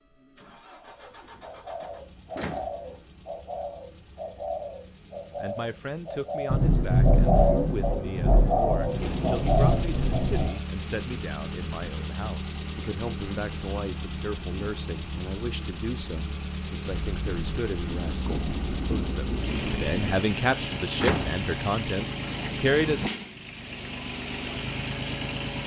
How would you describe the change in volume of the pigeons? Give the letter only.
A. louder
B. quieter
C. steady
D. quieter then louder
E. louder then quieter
A.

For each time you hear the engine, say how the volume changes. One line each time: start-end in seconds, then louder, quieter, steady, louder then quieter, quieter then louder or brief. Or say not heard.
0.0-25.6 louder.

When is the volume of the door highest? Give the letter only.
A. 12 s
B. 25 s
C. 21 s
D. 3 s
C.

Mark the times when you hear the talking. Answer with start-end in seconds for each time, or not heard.
5.3-23.1.